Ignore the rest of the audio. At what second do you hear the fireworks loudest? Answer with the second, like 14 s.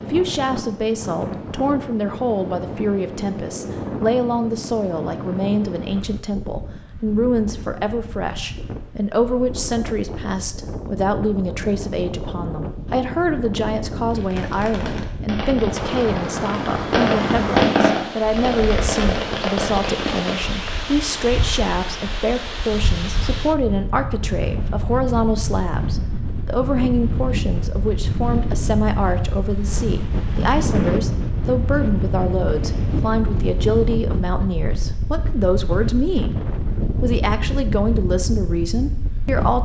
18 s.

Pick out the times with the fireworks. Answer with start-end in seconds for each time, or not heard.
14.1-20.6.